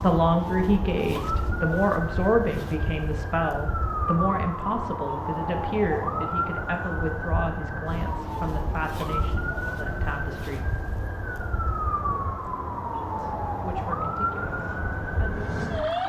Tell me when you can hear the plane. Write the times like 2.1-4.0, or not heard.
14.2-15.9.